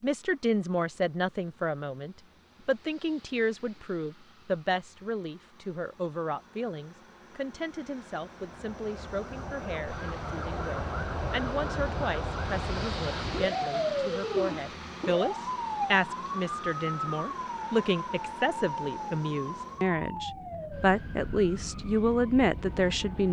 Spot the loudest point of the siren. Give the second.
14 s.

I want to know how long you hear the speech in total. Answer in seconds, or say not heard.
23 s.